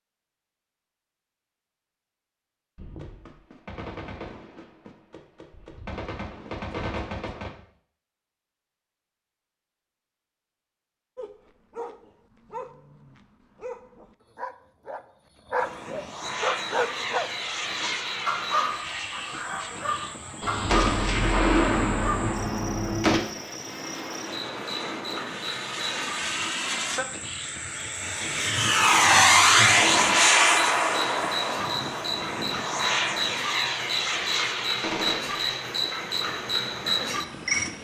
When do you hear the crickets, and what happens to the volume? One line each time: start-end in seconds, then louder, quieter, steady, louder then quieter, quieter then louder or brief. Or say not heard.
16.2-37.7 louder.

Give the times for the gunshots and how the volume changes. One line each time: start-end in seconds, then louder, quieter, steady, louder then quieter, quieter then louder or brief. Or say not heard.
2.8-7.5 quieter then louder
20.4-23.2 brief
34.8-35.4 brief.